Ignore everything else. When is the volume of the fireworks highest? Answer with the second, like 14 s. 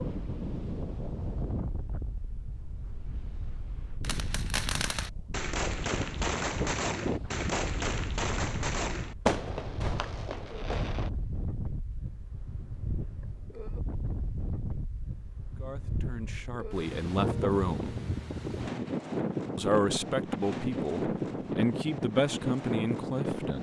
9 s.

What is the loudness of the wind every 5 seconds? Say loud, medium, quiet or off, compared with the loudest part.
medium, medium, medium, loud, loud.